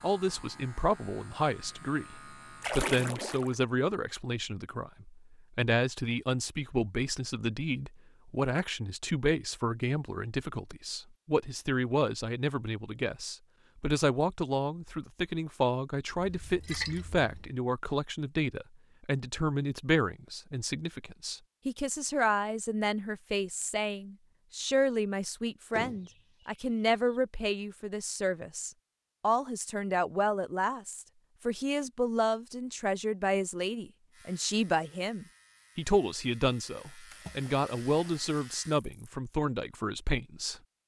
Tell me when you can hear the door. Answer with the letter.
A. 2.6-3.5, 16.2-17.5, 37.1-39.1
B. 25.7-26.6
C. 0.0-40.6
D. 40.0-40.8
B.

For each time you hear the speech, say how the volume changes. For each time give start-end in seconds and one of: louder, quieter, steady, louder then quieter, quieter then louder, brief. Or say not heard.
0.0-40.6 steady.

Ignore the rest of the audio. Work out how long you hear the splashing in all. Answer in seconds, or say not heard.
4 s.